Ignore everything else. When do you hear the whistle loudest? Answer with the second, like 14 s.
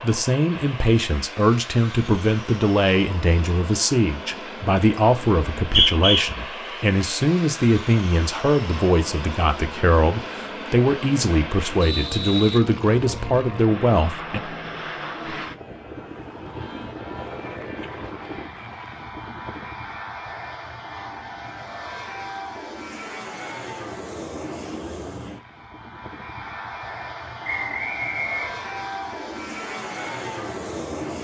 6 s.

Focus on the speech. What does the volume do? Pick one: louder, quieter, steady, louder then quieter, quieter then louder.
steady.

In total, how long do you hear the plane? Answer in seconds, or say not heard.
31 s.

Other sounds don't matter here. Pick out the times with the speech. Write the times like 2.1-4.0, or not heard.
0.0-14.4.